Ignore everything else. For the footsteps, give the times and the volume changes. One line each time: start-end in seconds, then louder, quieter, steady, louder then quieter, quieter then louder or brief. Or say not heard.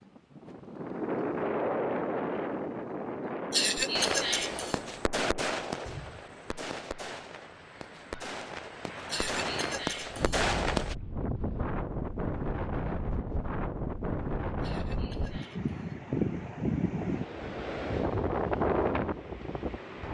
not heard.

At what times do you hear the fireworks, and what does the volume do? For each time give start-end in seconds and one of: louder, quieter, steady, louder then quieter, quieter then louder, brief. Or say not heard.
3.8-10.9 quieter then louder.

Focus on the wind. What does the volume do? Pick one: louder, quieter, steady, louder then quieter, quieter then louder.
quieter then louder.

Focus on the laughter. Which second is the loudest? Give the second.
4 s.